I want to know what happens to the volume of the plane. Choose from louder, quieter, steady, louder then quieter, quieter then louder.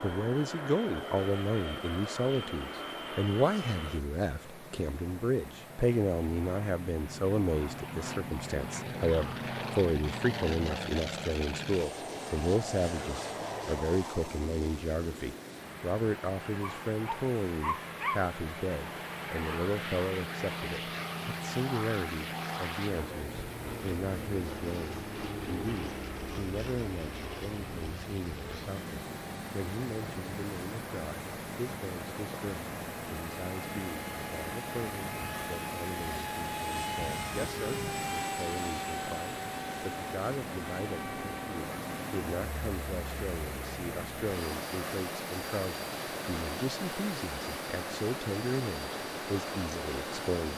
steady.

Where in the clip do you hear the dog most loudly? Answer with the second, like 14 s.
18 s.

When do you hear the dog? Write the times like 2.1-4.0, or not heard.
16.6-18.3.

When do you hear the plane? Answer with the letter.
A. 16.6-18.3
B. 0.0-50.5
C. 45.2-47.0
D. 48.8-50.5
B.